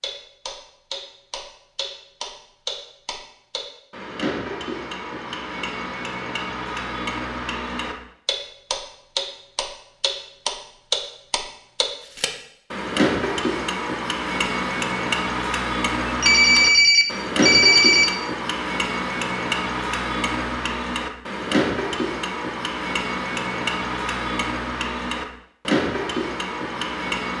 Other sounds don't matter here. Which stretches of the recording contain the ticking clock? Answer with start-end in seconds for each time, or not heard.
0.0-27.3.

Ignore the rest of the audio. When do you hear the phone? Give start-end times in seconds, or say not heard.
16.1-18.1.